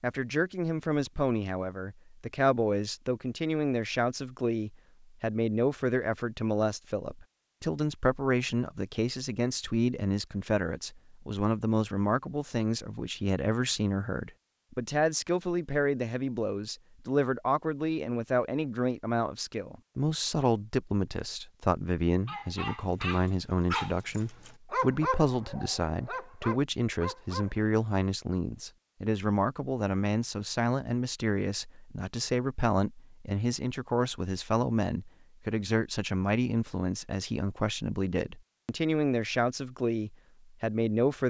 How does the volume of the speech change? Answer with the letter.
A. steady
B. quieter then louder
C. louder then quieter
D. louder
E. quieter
A.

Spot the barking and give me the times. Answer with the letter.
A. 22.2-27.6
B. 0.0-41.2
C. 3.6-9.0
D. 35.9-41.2
A.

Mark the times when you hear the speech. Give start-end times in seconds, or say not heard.
0.0-41.2.